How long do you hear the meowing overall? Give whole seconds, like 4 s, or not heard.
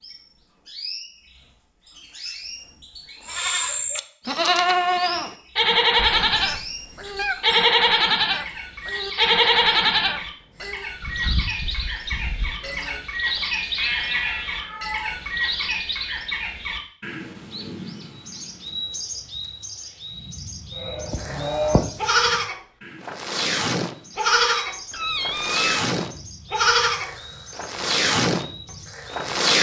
4 s.